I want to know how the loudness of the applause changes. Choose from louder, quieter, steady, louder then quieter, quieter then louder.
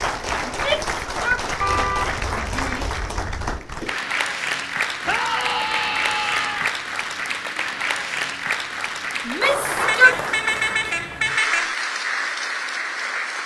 steady.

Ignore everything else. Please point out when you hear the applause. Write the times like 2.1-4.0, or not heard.
0.0-13.4.